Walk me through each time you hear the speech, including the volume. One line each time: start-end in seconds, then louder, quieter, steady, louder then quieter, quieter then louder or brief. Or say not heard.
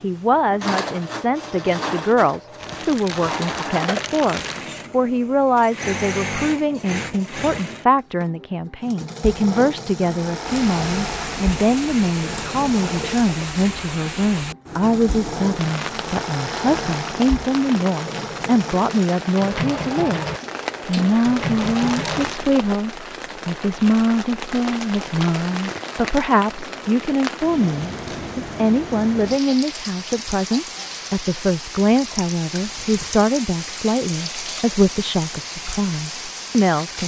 0.0-37.0 steady.